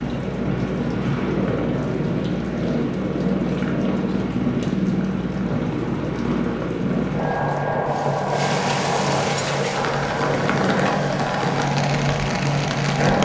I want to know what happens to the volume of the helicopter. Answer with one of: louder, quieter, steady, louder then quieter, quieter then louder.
steady.